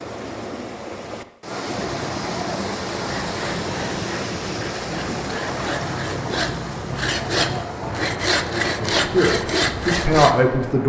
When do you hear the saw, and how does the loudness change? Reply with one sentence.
You can hear the saw from 3.1 to 10.4 s, getting louder.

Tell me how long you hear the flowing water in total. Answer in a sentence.
The flowing water can be heard for 11 seconds in total.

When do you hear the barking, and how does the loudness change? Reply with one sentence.
You can't hear the barking here.